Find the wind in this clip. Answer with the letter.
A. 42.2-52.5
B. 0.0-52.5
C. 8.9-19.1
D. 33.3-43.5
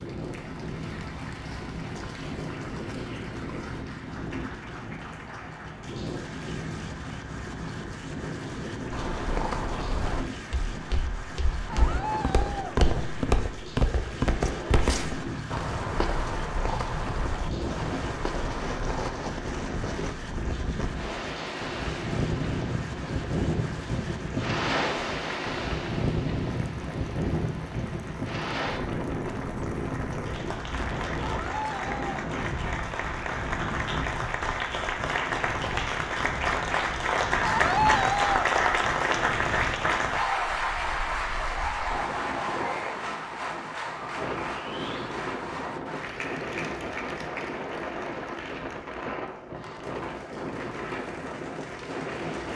B.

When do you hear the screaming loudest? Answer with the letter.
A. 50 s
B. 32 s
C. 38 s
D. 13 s
C.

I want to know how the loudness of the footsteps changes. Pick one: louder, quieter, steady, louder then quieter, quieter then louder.
louder then quieter.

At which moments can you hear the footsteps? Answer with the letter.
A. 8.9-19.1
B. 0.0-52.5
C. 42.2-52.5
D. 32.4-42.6
A.